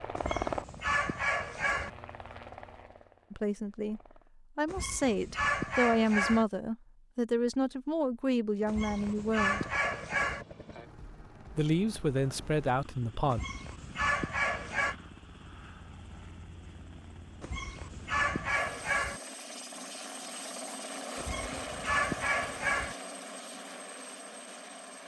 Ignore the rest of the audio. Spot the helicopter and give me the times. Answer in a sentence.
You can hear the helicopter from 0.0 to 4.3 s and from 8.5 to 25.0 s.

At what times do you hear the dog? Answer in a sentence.
The dog can be heard from 0.1 to 1.9 s, from 4.7 to 6.5 s, from 8.7 to 10.4 s, from 13.3 to 14.9 s, from 17.4 to 19.2 s and from 21.1 to 22.9 s.